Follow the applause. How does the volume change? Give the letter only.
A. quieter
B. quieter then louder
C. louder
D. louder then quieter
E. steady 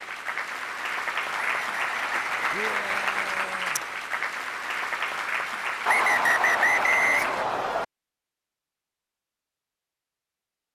E.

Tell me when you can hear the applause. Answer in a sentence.
You can hear the applause from 0.0 to 7.5 s.